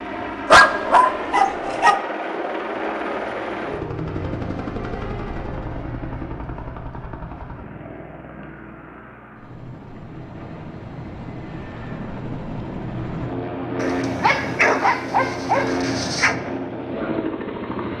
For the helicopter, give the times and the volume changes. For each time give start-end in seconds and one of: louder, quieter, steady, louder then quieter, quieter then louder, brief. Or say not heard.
0.0-17.9 quieter then louder.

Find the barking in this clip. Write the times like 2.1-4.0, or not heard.
0.5-2.0, 13.8-16.4.